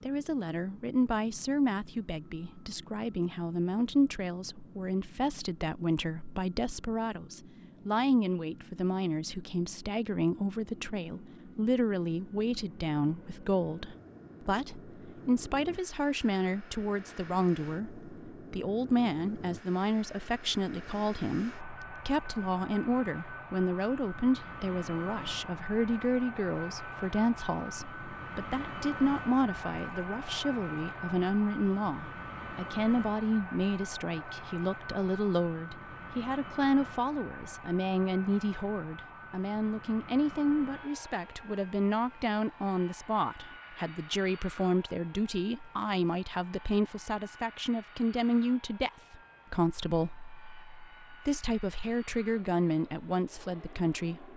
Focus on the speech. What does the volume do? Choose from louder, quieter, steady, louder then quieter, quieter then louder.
steady.